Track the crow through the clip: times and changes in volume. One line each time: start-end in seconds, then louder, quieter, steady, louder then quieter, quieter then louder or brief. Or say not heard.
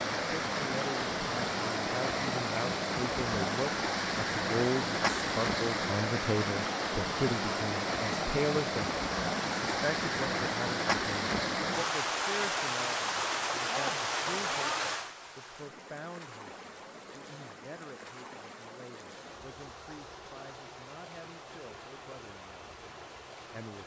not heard.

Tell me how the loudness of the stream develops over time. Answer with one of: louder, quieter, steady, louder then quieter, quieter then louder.
quieter.